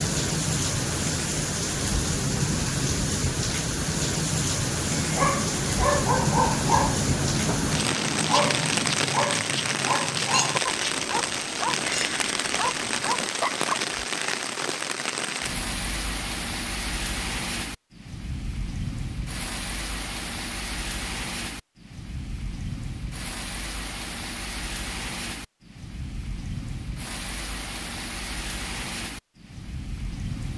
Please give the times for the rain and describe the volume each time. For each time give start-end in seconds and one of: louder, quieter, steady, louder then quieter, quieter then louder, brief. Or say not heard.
0.0-30.5 quieter.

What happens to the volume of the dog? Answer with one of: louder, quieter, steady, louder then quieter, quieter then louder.
quieter.